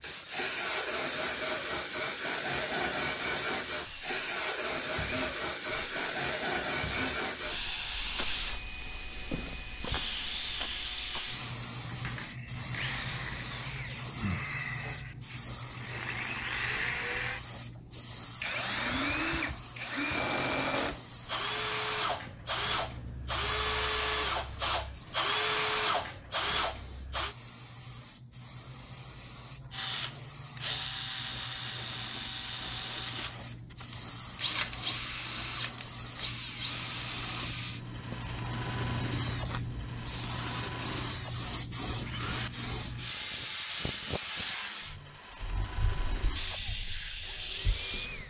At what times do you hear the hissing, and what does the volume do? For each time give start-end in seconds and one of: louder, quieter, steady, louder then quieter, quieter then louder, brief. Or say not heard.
0.0-48.2 quieter then louder.